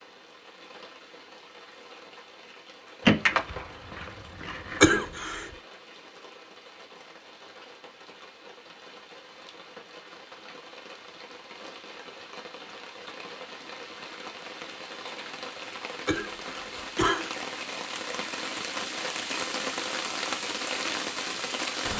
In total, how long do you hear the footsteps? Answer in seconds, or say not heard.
not heard.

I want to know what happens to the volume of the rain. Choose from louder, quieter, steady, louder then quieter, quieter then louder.
louder.